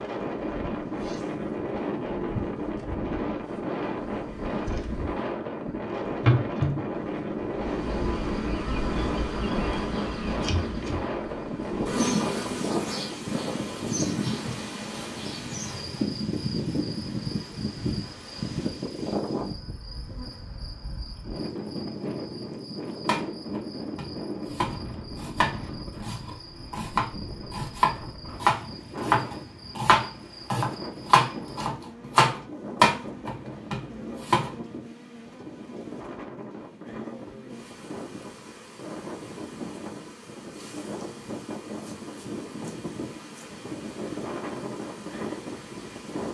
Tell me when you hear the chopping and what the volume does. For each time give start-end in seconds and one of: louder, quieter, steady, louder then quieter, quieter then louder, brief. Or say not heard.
23.1-34.5 louder.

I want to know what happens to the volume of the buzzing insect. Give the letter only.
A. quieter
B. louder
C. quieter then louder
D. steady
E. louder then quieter
A.